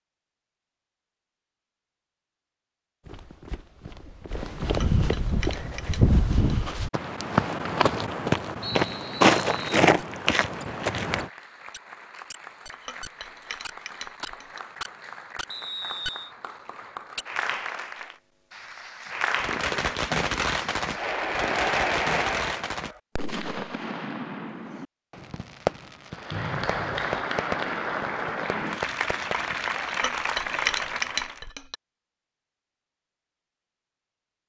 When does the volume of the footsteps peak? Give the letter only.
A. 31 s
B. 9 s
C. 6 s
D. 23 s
B.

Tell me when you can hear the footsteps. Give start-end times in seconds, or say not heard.
3.0-11.3.